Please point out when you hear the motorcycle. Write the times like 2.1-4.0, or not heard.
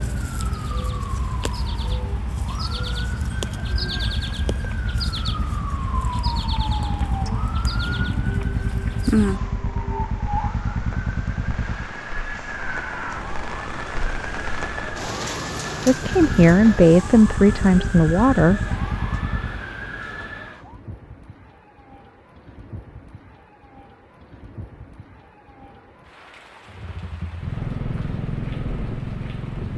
0.0-11.9, 16.0-19.6, 26.6-29.7.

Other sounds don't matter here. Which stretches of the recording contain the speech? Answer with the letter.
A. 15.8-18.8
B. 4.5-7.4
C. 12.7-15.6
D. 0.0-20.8
A.